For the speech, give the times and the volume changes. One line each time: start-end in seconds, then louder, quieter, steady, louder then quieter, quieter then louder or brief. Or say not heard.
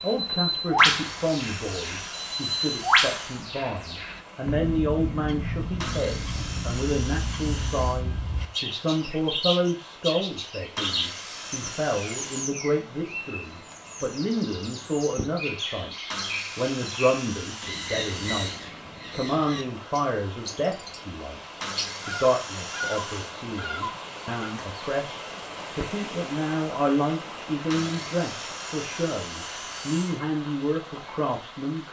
0.0-31.8 steady.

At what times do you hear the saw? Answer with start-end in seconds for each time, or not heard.
0.8-3.5, 5.8-8.0, 10.8-12.6, 16.1-18.6, 21.6-23.4, 27.7-30.2.